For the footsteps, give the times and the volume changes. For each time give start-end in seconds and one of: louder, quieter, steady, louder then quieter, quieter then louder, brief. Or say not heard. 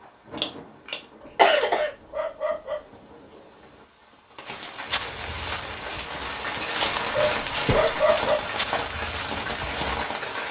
4.8-10.1 louder then quieter.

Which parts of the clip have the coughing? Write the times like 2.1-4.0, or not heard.
0.3-1.9, 7.2-8.0.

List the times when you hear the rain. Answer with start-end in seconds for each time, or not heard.
0.0-10.4.